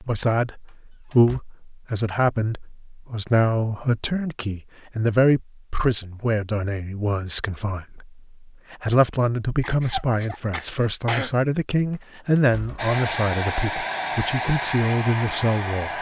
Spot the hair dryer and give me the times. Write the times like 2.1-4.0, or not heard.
12.8-15.9.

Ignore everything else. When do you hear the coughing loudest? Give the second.
11 s.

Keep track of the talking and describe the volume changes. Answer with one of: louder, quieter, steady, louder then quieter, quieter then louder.
steady.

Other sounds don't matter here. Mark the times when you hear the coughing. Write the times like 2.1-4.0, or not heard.
9.6-11.3.